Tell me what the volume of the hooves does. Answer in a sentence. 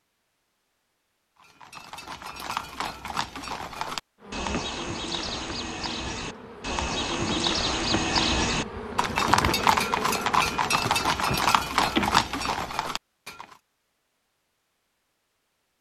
The loudness of the hooves goes up.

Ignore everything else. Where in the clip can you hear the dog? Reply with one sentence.
You can't hear the dog here.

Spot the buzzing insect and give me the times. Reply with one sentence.
The buzzing insect can be heard from 4.2 to 12.2 s.